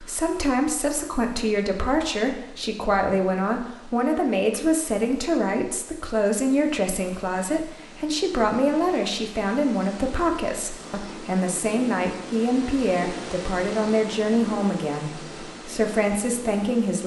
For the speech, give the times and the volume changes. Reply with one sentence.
The speech can be heard from 0.0 to 17.0 s, at a steady volume.